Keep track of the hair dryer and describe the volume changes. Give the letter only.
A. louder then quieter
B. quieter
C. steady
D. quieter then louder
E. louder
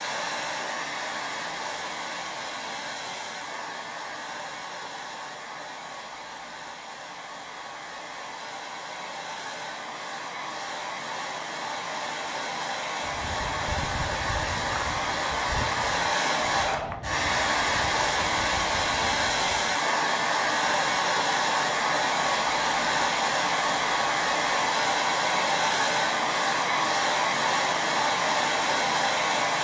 E.